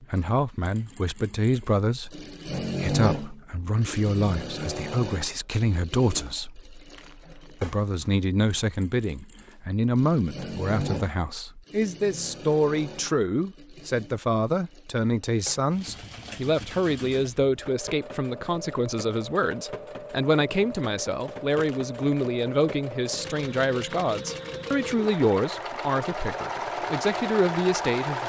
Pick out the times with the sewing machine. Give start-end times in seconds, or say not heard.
0.0-28.2.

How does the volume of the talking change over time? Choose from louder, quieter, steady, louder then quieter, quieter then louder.
steady.